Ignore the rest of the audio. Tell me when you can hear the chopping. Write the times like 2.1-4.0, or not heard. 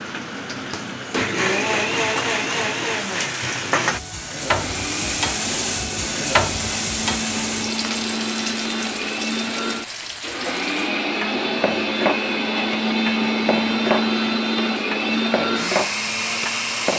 not heard.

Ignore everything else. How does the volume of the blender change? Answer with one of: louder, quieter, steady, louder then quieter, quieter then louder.
quieter then louder.